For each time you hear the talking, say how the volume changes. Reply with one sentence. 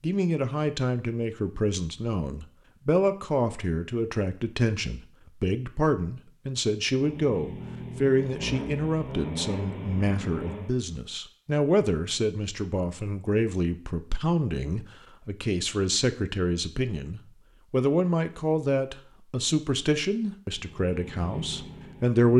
The talking can be heard from 0.0 to 22.3 s, at a steady volume.